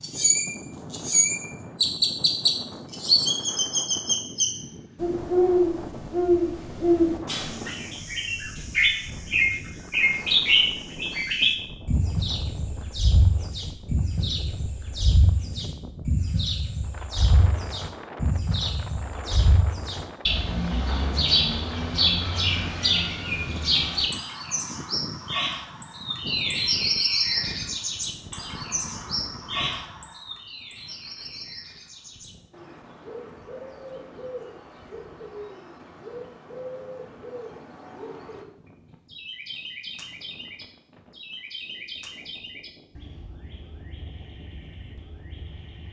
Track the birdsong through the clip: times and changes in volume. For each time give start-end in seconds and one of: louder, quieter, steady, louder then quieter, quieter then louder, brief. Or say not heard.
0.0-38.5 quieter
39.0-45.8 quieter.